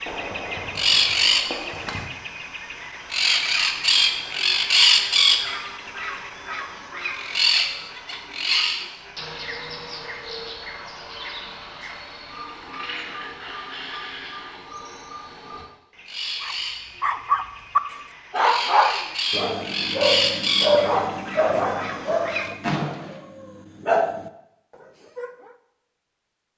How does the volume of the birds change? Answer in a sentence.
The loudness of the birds goes down, then up.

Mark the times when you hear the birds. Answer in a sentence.
The birds can be heard from 0.0 to 22.5 s.